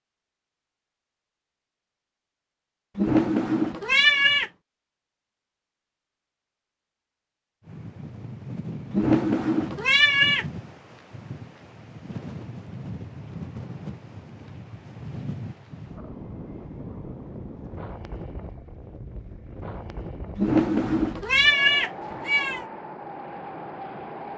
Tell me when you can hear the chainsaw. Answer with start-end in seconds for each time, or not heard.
not heard.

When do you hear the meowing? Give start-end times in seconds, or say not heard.
3.0-4.5, 8.9-10.4, 20.4-22.6.